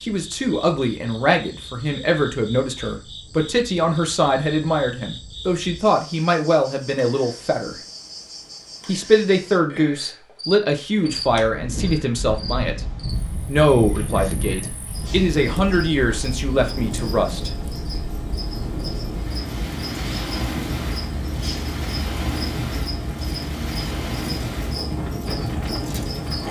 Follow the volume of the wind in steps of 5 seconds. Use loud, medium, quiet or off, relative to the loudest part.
off, off, loud, loud, loud, loud.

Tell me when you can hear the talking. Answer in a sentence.
You can hear the talking from 0.0 to 7.8 s, from 8.8 to 12.8 s and from 13.4 to 17.5 s.